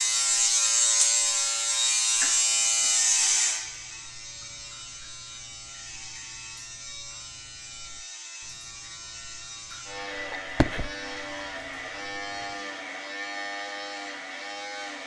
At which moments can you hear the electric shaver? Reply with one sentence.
You can hear the electric shaver from 0.0 to 15.0 s.